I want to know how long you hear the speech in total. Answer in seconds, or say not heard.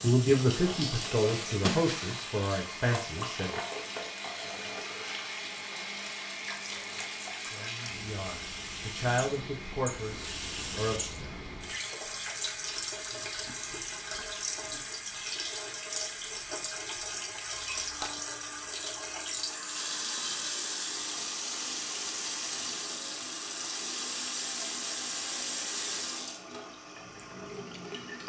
7 s.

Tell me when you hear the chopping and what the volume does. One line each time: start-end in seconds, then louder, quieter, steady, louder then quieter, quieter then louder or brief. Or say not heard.
not heard.